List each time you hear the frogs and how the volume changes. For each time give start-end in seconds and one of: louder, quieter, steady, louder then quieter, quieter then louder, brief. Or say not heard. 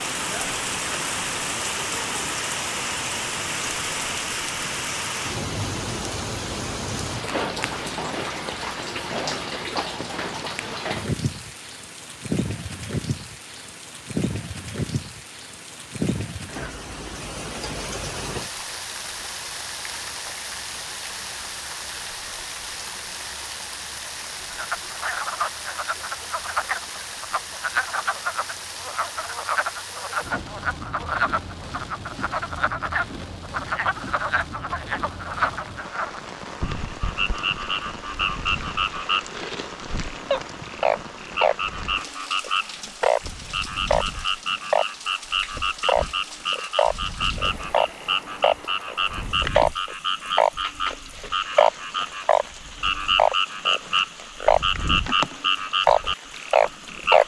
24.5-57.2 louder.